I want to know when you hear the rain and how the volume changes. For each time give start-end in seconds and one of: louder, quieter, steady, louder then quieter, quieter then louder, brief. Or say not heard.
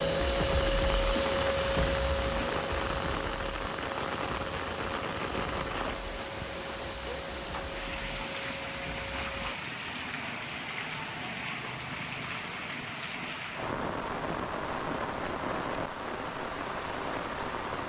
0.0-17.8 steady.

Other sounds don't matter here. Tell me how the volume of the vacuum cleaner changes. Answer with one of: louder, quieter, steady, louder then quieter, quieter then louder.
quieter.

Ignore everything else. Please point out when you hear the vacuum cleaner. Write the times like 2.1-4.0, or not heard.
0.0-9.6.